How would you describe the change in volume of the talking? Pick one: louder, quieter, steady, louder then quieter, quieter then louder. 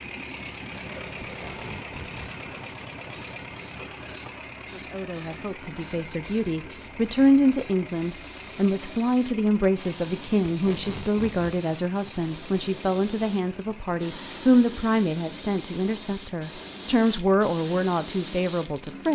steady.